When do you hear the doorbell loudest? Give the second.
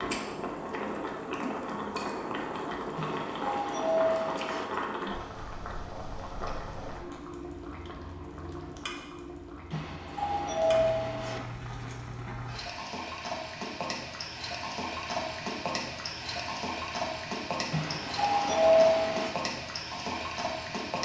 19 s.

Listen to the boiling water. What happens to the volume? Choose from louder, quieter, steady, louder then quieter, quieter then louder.
quieter then louder.